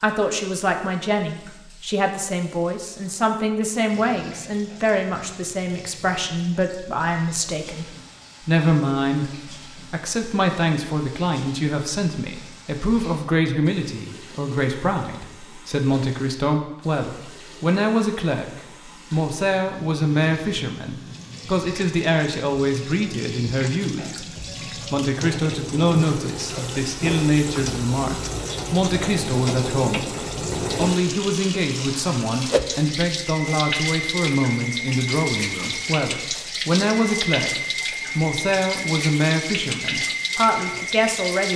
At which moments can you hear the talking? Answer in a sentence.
The talking can be heard from 0.0 to 41.5 s.